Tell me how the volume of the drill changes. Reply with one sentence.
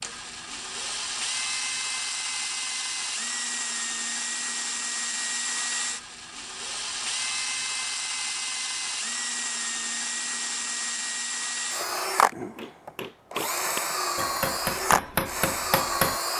The volume of the drill stays about the same.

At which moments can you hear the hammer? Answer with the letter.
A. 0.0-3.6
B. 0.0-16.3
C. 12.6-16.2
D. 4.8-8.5
C.